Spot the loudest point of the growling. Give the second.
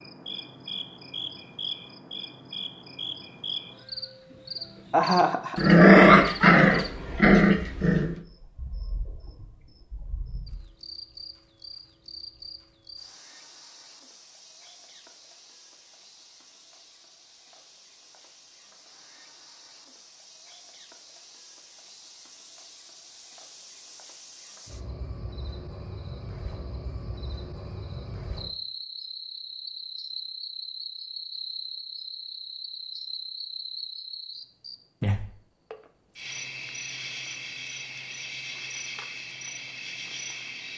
6 s.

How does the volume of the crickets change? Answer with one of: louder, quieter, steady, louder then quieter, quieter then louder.
quieter then louder.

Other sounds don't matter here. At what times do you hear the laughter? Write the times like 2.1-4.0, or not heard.
4.9-5.6.